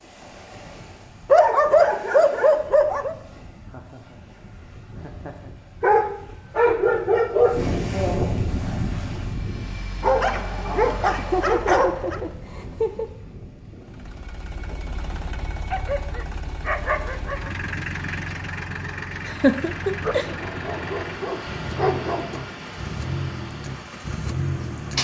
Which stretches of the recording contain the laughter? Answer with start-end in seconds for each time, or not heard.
3.7-5.5, 11.2-13.1, 19.2-20.2.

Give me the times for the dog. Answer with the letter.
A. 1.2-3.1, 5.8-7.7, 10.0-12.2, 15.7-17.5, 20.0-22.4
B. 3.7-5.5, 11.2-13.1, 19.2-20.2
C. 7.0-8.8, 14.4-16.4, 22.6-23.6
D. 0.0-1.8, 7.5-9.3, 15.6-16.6
A.